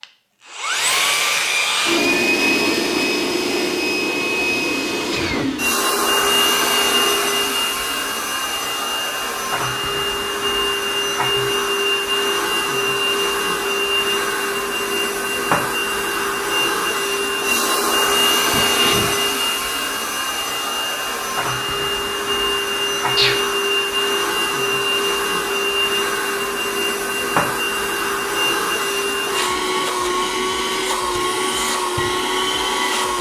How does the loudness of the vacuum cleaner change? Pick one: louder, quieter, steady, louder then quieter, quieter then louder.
steady.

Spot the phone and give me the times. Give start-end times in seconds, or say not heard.
not heard.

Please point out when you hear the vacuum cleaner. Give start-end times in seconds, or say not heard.
0.0-33.1.